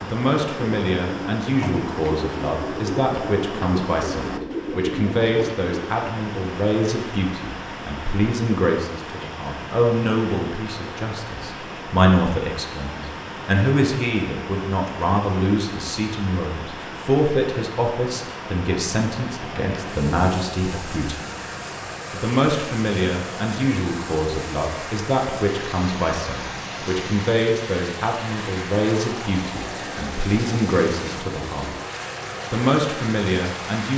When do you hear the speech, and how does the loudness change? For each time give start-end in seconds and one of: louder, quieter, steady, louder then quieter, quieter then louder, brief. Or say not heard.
0.0-21.2 steady
22.1-31.7 steady
32.5-33.9 brief.